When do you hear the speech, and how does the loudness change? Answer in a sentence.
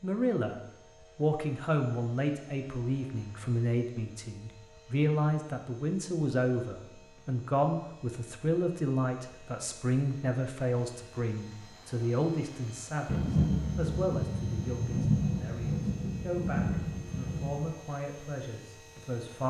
The speech can be heard from 0.0 to 19.4 s, getting quieter.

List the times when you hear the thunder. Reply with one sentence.
You can hear the thunder from 13.1 to 17.7 s.